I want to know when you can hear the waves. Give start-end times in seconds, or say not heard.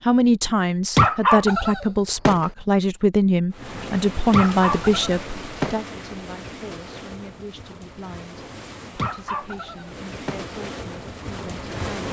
3.5-12.0.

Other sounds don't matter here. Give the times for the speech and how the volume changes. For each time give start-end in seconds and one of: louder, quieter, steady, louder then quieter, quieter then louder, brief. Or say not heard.
0.0-12.0 quieter.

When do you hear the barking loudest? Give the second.
1 s.